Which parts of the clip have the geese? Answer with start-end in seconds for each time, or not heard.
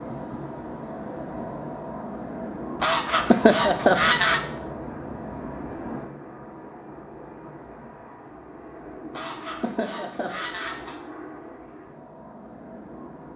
2.8-4.4, 9.1-10.9.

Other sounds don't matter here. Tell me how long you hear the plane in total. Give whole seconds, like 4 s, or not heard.
13 s.